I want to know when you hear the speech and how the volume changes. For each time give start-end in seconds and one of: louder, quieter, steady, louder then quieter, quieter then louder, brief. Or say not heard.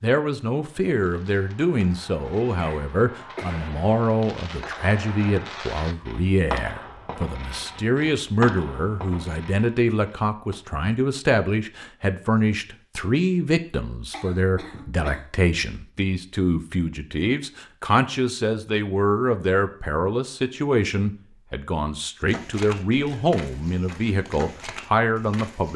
0.0-25.7 steady.